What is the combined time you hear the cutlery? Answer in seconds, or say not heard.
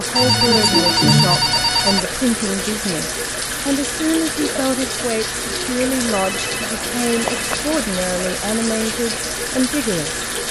not heard.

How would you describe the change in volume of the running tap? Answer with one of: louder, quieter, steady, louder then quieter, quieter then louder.
steady.